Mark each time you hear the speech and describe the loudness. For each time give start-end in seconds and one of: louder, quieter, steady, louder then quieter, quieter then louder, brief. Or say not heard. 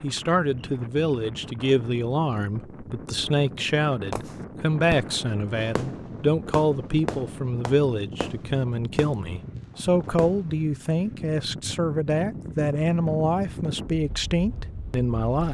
0.0-15.4 steady.